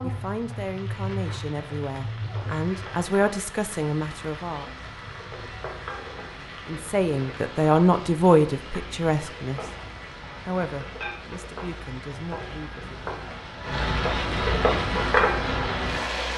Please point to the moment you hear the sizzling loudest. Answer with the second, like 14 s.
15 s.